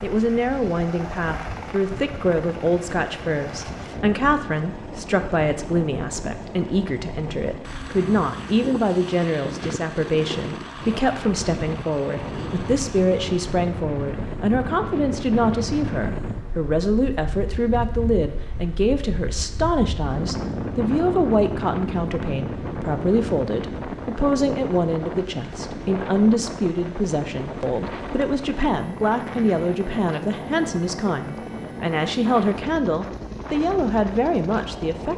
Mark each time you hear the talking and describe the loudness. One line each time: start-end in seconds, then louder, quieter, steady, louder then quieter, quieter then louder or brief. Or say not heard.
0.0-35.1 steady.